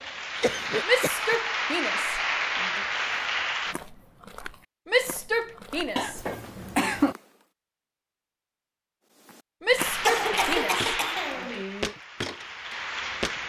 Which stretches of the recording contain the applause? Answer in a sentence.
You can hear the applause from 0.0 to 3.8 s and from 9.8 to 13.4 s.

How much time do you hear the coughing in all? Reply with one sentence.
You can hear the coughing for 4 seconds altogether.